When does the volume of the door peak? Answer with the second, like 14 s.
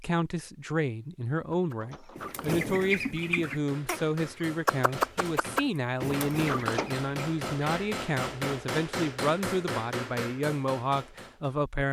7 s.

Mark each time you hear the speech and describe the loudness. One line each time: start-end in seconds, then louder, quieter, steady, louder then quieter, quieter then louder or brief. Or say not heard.
0.0-11.8 steady.